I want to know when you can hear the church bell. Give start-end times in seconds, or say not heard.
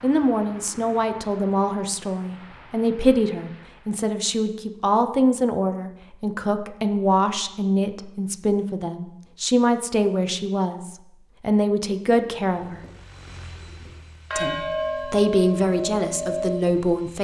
12.6-16.9.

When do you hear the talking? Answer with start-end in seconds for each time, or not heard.
0.0-12.8, 14.3-17.1.